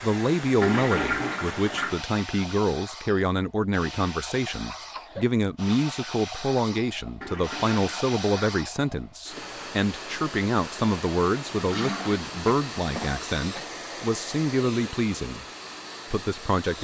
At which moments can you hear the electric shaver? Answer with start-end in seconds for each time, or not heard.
not heard.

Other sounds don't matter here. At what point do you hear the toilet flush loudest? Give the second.
1 s.